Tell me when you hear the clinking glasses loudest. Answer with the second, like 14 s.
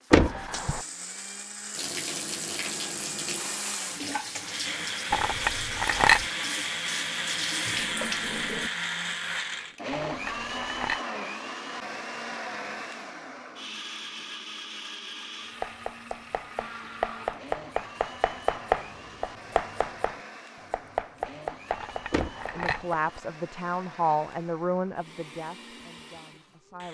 6 s.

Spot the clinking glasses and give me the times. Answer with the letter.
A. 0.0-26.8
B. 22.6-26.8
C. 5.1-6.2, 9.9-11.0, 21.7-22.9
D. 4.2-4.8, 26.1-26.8
C.